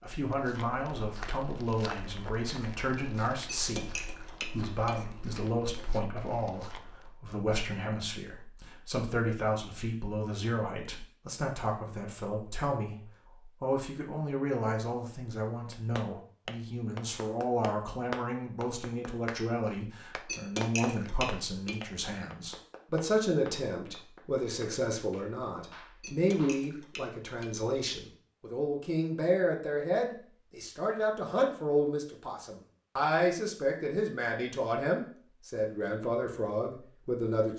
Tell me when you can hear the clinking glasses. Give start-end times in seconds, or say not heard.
3.5-5.0, 20.2-21.8, 26.0-27.5.